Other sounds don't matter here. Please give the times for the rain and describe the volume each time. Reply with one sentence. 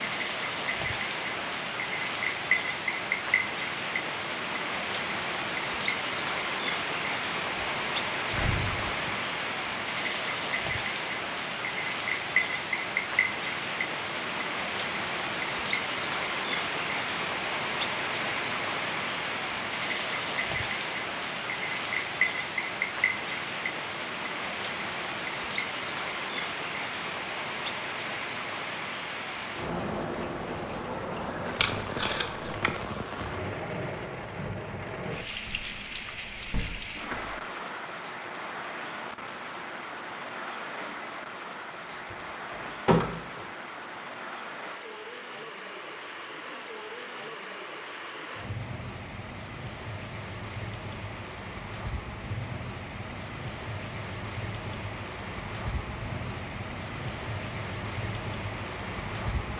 The rain can be heard from 0.0 to 59.5 s, getting quieter.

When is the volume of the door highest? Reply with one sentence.
The volume of the door peaks at 43 seconds.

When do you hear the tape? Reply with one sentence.
You can hear the tape from 31.6 to 32.8 s.